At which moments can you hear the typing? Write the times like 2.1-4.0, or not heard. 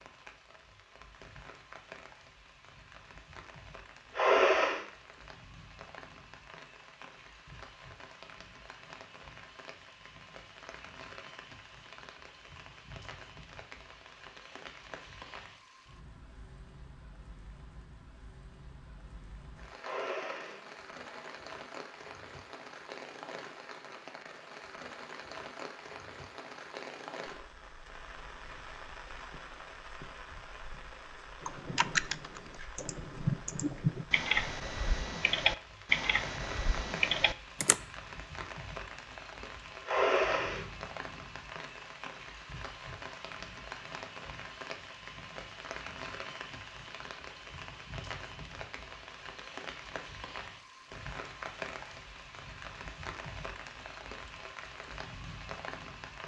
31.4-37.8.